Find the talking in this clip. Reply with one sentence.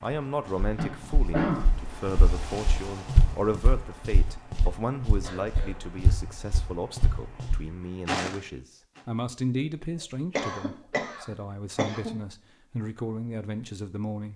You can hear the talking from 0.0 to 14.3 s.